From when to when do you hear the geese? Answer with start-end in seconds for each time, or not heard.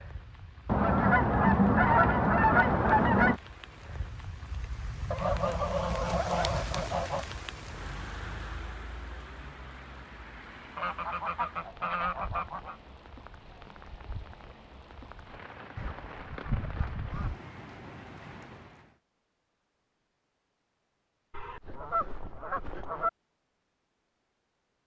0.7-3.4, 5.1-7.2, 10.8-12.8, 15.8-17.4, 21.3-23.1.